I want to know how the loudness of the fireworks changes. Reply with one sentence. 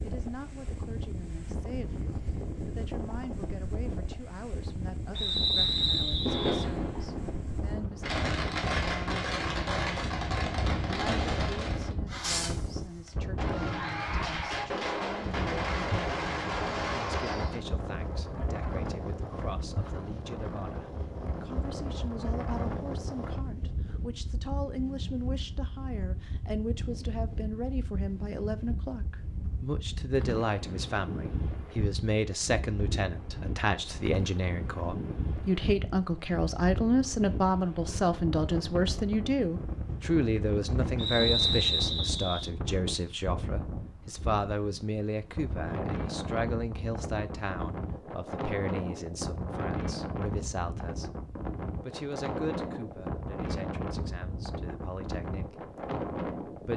The volume of the fireworks stays about the same.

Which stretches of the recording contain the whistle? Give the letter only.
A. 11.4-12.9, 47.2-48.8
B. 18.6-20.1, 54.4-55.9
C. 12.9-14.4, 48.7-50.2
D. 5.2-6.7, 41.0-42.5
D.